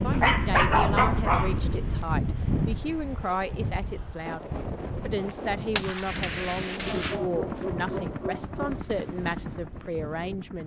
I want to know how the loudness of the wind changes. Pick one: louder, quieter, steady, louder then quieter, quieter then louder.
quieter.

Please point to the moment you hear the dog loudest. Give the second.
1 s.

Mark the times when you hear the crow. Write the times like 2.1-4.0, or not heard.
not heard.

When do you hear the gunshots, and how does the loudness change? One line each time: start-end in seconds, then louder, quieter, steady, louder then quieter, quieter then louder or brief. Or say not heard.
4.2-8.2 louder then quieter.